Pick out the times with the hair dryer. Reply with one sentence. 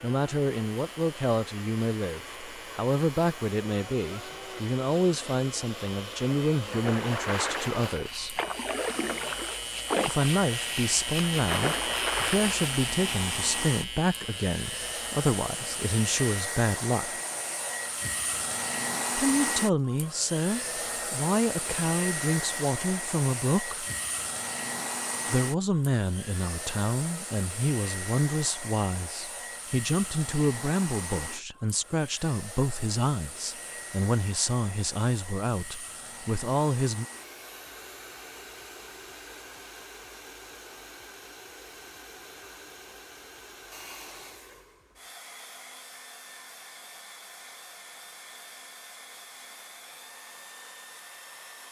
You can hear the hair dryer from 0.0 to 51.6 s.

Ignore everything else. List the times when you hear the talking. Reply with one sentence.
You can hear the talking from 0.0 to 8.4 s, from 10.1 to 17.2 s, from 19.1 to 23.9 s and from 25.2 to 37.0 s.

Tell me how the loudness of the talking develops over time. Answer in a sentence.
The loudness of the talking stays about the same.